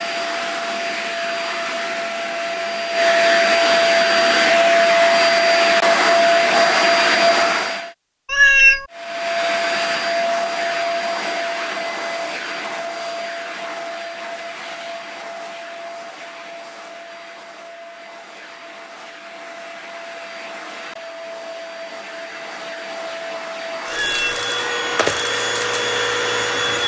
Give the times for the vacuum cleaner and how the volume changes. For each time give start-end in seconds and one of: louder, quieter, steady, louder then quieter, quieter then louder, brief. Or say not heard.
0.0-7.9 louder
8.9-26.8 quieter then louder.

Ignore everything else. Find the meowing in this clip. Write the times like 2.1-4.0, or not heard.
8.2-8.8, 23.9-24.4.